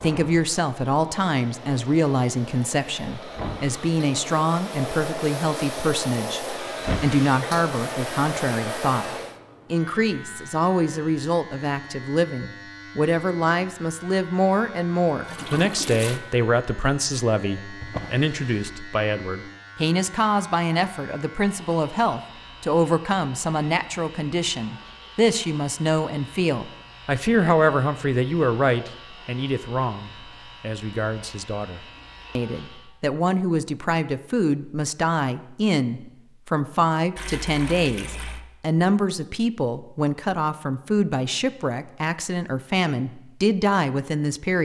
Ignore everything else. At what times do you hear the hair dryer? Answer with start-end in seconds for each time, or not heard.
0.0-9.3.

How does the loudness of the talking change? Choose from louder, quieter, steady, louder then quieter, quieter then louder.
steady.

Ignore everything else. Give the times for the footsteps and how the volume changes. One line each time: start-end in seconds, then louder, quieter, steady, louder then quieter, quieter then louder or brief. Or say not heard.
not heard.